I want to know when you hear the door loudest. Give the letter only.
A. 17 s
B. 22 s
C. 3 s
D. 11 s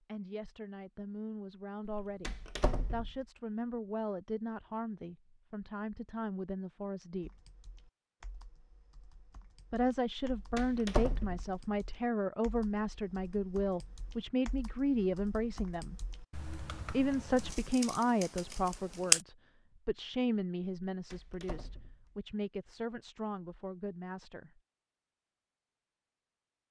D.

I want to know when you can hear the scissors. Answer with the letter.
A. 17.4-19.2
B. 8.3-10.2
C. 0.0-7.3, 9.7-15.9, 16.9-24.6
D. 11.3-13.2
A.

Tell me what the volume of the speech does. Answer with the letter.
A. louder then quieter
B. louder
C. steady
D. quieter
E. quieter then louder
A.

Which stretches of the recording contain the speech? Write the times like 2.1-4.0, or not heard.
0.0-7.3, 9.7-15.9, 16.9-24.6.